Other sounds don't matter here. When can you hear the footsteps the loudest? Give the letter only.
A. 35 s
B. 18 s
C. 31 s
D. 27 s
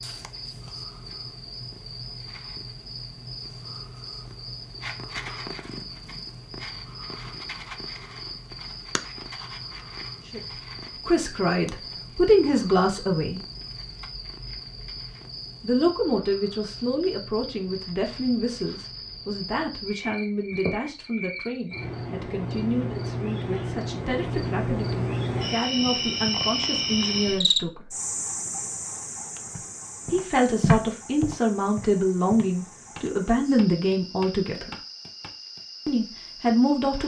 C.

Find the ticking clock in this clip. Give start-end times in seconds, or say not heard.
not heard.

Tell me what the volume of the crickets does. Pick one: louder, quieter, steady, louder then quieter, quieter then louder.
louder then quieter.